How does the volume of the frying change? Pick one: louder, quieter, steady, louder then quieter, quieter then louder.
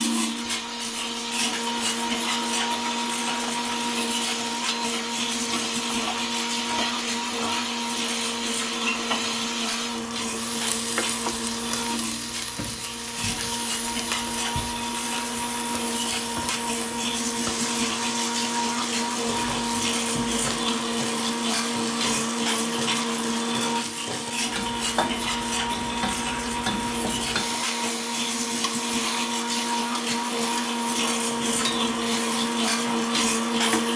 steady.